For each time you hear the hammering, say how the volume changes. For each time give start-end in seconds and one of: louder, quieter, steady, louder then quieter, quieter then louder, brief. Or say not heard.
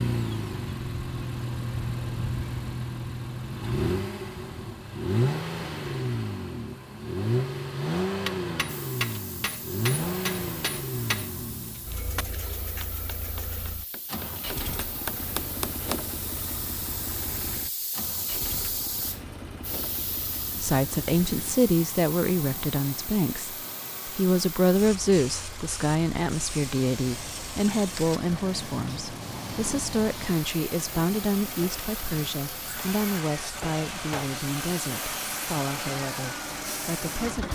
8.2-16.0 quieter then louder.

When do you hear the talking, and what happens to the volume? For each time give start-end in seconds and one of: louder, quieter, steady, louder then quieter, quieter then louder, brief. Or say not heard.
20.6-37.4 quieter.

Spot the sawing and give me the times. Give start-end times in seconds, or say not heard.
not heard.